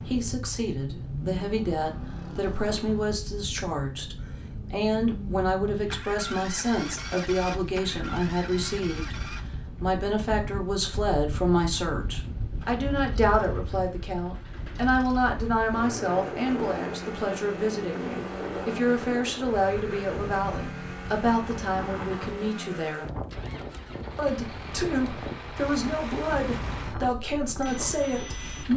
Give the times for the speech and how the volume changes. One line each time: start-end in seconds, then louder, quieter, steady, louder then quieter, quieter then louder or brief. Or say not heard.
0.0-9.2 steady
9.8-23.1 steady
24.1-28.7 steady.